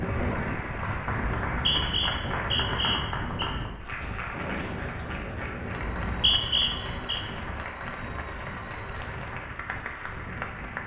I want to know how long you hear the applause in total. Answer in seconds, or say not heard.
11 s.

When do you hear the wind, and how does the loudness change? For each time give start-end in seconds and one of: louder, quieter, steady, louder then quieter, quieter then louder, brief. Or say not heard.
0.0-10.8 quieter.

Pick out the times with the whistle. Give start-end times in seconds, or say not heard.
1.4-3.5, 5.8-7.2.